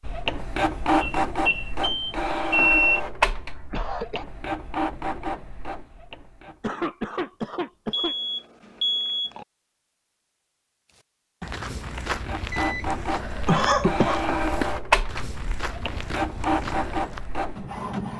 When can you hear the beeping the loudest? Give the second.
3 s.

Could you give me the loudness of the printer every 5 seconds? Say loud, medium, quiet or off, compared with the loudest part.
loud, medium, loud, loud.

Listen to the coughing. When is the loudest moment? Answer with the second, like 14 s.
14 s.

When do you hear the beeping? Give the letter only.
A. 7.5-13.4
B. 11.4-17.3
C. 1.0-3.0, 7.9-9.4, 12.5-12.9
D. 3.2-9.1
C.